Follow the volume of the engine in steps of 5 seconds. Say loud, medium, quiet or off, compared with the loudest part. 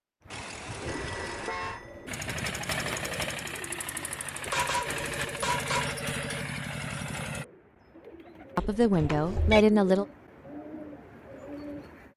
loud, loud, off.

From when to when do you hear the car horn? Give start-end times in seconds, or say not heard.
0.3-1.8, 4.5-6.0, 9.0-9.7.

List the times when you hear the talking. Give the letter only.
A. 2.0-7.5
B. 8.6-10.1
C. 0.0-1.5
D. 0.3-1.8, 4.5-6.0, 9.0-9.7
B.